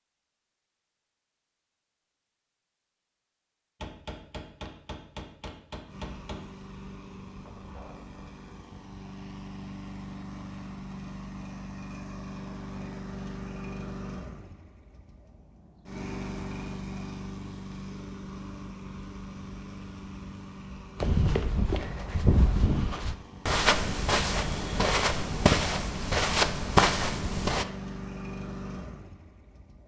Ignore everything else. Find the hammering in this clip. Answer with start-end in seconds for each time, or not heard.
3.8-6.5.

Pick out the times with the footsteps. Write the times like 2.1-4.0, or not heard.
21.0-27.6.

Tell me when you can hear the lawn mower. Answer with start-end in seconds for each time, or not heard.
5.8-29.8.